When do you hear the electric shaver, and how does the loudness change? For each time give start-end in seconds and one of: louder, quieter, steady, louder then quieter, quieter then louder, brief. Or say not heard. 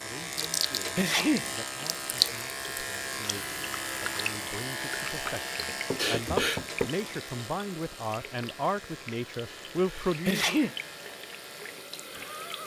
0.0-12.6 quieter.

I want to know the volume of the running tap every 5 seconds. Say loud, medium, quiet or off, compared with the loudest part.
loud, medium, medium.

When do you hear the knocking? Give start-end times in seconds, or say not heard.
5.2-6.9.